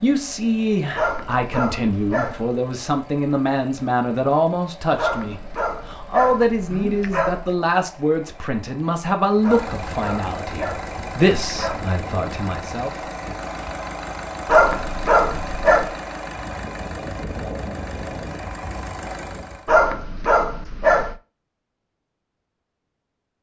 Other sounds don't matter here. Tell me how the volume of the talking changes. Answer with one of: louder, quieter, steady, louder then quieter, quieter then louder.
steady.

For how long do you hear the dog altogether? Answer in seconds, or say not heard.
10 s.